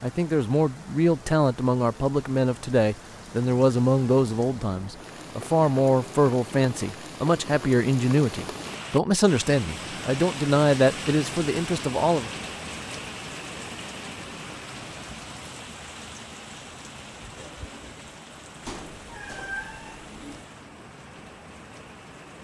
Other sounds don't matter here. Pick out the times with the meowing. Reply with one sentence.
The meowing can be heard from 18.6 to 20.4 s.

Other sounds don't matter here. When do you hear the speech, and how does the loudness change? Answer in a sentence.
You can hear the speech from 0.0 to 12.3 s, at a steady volume.